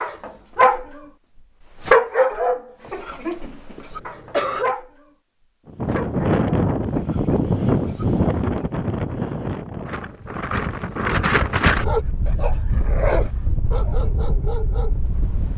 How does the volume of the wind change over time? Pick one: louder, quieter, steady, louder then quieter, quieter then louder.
quieter.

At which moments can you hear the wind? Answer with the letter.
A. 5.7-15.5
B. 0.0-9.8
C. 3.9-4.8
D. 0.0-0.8
A.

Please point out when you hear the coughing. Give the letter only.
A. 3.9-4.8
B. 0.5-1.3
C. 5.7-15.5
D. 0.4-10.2
A.